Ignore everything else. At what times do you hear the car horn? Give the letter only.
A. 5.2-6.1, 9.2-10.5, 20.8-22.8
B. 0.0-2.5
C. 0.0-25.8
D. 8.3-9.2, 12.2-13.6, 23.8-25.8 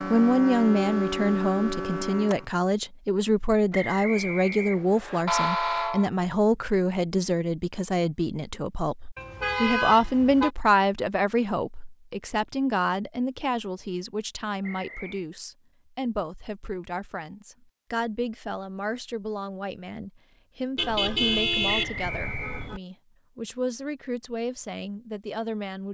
A.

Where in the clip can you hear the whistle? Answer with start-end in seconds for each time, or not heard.
3.7-5.2, 14.6-15.2, 21.6-22.7.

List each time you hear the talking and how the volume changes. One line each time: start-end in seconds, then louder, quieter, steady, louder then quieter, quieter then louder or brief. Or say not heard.
0.0-25.8 quieter.